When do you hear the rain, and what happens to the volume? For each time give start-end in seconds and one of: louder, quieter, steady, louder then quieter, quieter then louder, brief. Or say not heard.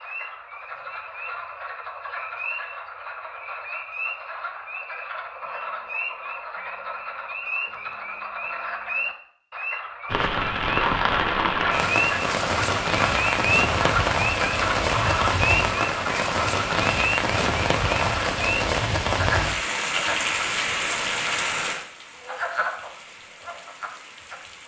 10.1-24.6 quieter.